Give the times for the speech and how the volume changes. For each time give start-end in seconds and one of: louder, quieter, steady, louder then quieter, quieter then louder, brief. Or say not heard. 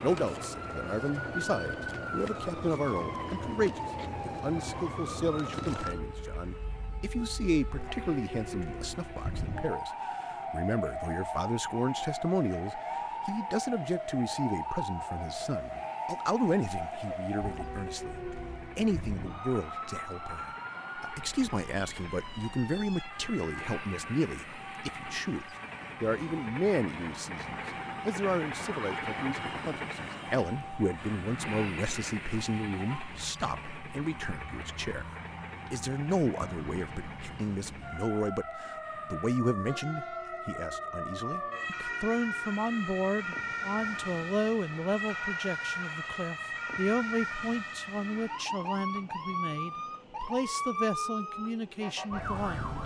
0.0-52.7 steady.